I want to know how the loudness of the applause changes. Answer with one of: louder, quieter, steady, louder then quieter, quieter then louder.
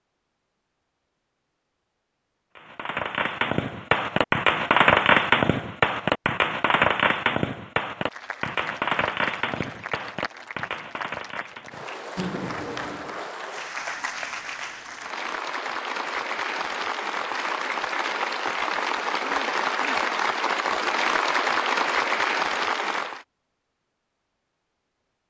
louder.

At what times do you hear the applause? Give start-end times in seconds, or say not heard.
8.0-23.2.